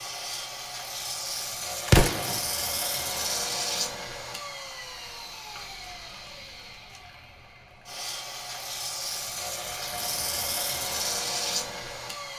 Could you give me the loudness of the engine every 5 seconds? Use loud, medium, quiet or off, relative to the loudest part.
loud, medium, loud.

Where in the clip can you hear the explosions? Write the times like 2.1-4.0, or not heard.
1.9-2.4.